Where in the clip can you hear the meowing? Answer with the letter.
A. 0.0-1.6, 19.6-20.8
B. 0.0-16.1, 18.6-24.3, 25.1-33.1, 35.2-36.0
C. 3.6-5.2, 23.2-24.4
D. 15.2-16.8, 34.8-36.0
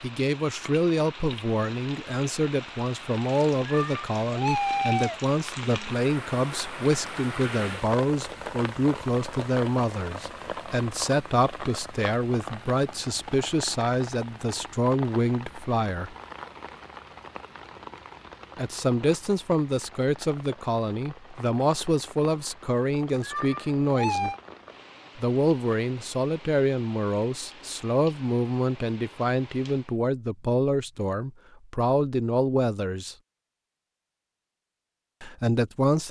C.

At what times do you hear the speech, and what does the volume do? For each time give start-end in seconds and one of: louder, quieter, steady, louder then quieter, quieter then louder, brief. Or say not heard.
0.0-16.1 steady
18.6-24.3 steady
25.1-33.1 steady
35.2-36.0 brief.